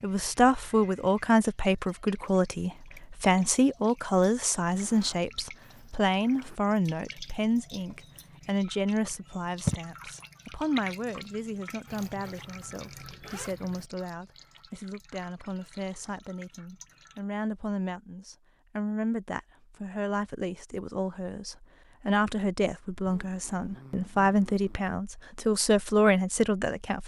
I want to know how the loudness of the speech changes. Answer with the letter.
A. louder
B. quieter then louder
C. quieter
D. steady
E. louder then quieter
B.